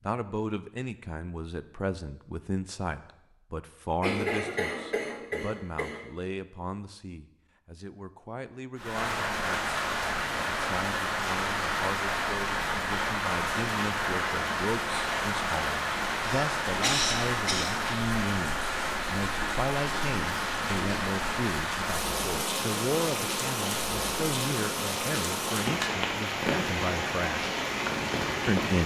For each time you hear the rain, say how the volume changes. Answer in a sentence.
The rain can be heard from 8.8 to 28.8 s, at a steady volume.